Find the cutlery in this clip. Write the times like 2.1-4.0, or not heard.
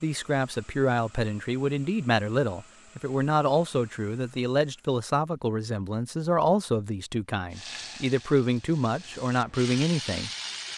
not heard.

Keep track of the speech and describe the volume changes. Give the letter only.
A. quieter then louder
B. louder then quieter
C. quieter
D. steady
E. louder
D.